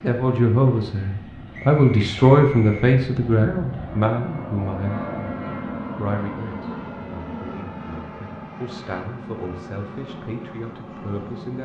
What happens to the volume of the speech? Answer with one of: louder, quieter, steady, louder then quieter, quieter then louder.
quieter.